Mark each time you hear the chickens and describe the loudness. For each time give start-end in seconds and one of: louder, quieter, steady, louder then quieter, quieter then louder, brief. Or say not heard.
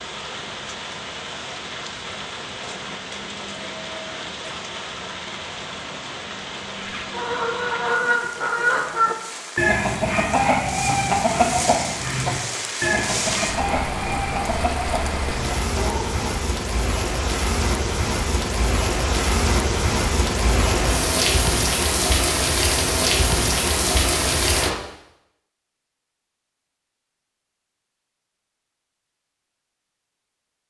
6.8-16.2 quieter.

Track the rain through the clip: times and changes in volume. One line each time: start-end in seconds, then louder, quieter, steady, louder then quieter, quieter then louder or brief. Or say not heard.
0.0-24.8 louder.